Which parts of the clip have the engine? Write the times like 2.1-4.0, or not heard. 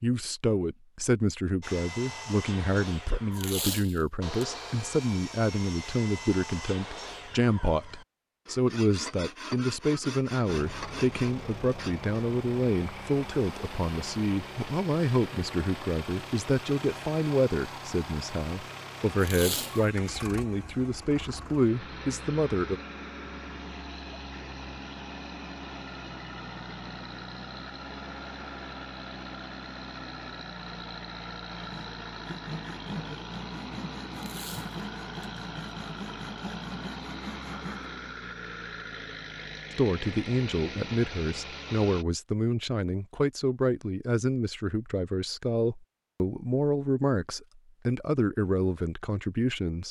10.4-42.0.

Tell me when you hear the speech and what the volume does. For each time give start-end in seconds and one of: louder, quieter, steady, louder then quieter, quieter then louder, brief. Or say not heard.
0.0-22.8 steady
39.8-49.8 steady.